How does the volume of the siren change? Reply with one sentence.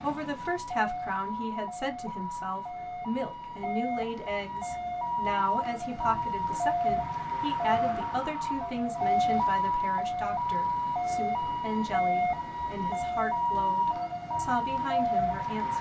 The loudness of the siren goes up.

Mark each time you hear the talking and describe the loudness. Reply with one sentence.
The talking can be heard from 0.0 to 15.7 s, at a steady volume.